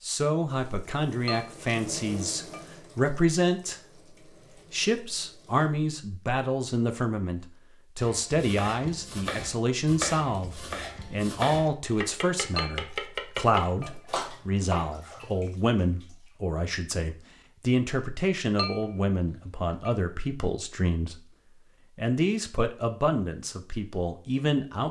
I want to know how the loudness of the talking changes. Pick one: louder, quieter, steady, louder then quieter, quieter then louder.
steady.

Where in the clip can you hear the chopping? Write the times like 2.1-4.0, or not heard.
8.0-15.0.